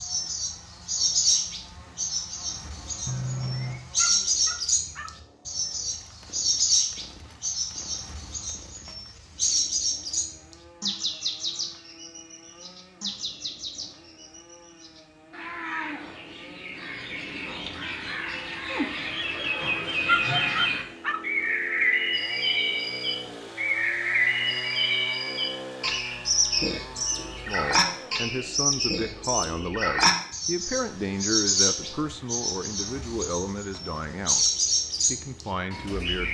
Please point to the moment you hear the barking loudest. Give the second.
20 s.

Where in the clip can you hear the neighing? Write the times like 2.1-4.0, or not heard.
3.0-3.8, 18.6-20.1.